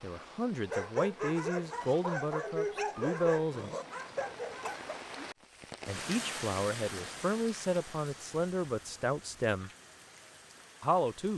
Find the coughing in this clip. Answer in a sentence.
The coughing can be heard from 4.0 to 5.0 s.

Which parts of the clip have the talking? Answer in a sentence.
The talking can be heard from 0.0 to 3.7 s, from 5.8 to 9.7 s and from 10.8 to 11.3 s.